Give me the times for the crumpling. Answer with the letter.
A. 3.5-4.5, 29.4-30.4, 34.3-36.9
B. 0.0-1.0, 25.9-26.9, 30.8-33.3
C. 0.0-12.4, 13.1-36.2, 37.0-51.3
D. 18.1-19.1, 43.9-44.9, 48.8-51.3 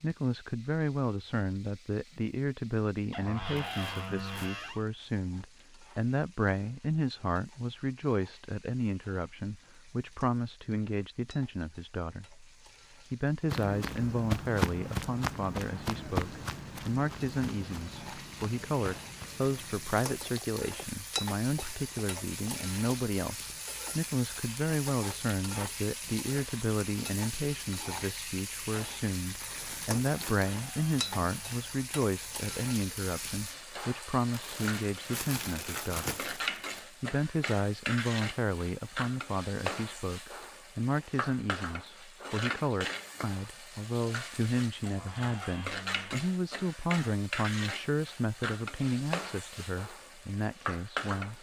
A.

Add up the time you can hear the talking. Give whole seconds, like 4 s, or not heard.
50 s.